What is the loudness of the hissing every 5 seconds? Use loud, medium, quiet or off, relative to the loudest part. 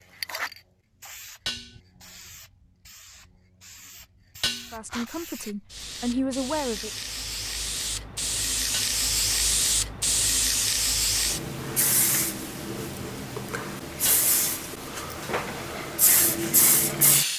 quiet, loud, loud, loud.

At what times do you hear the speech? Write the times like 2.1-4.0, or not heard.
4.7-6.9.